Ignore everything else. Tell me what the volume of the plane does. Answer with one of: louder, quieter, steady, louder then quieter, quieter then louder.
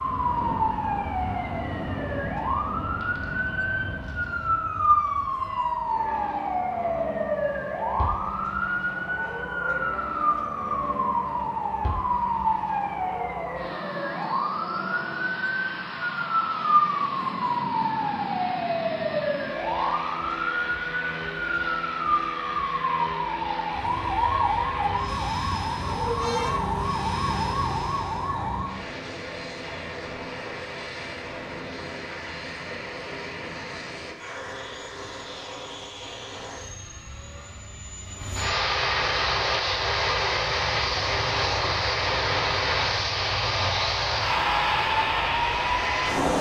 louder.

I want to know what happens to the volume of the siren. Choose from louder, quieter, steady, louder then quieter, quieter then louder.
steady.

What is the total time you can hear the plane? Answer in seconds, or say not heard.
46 s.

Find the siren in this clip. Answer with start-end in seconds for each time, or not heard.
0.0-28.8.